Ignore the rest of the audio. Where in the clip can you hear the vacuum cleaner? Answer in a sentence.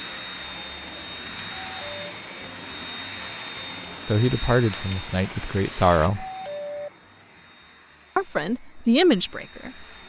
The vacuum cleaner can be heard from 0.0 to 10.0 s.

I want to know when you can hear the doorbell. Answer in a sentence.
You can hear the doorbell from 1.5 to 2.1 s and from 6.2 to 6.9 s.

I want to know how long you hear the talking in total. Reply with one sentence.
The talking can be heard for 4 seconds in total.